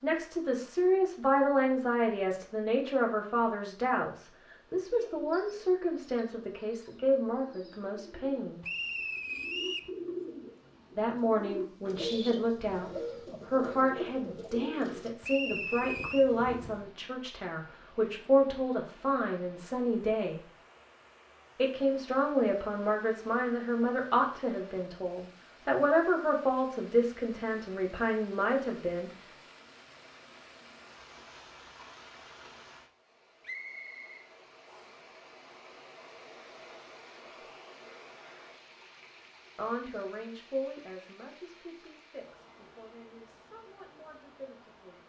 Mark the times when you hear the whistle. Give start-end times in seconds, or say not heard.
8.6-9.9, 15.2-16.2, 33.5-35.0.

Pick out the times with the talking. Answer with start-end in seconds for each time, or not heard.
0.0-8.7, 10.9-12.9, 13.5-20.4, 21.6-29.1, 39.5-45.0.